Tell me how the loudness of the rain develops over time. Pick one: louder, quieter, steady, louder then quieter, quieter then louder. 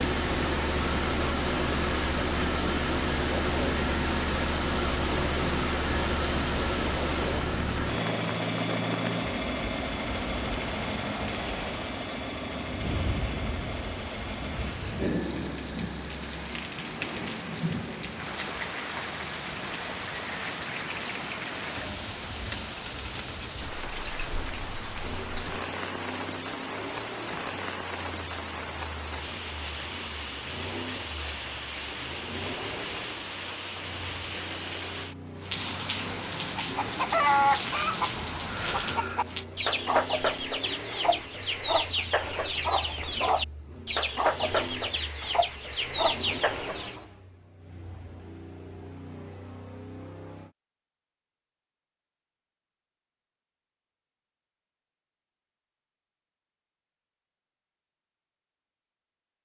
steady.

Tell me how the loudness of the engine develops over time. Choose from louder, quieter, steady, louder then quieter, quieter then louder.
quieter.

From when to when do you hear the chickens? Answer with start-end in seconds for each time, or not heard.
36.5-47.0.